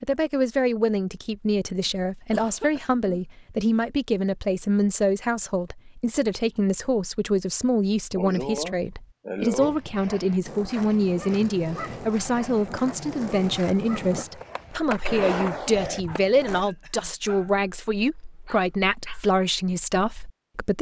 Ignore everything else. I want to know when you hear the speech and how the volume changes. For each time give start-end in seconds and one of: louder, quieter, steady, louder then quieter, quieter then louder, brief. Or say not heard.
0.0-20.7 steady.